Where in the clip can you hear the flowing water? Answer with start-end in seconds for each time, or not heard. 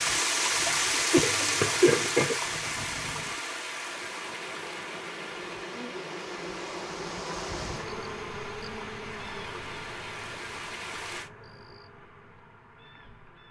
0.0-11.3.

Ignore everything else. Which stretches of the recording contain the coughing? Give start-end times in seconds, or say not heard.
1.1-2.4.